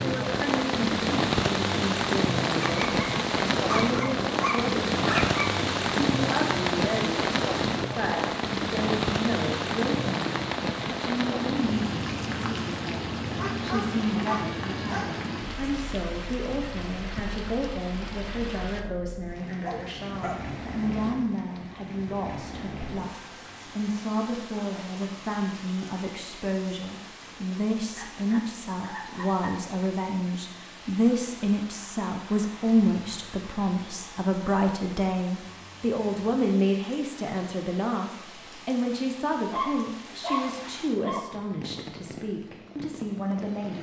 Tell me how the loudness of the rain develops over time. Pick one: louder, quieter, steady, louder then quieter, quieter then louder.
quieter.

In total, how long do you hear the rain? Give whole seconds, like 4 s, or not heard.
44 s.